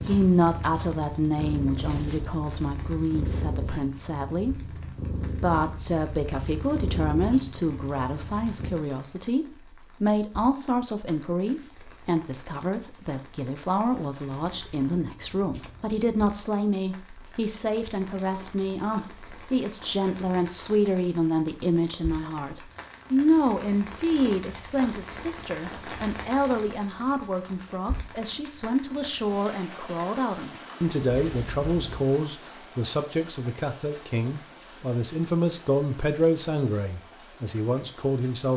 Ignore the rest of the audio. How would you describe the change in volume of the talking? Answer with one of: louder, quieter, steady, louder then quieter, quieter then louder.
steady.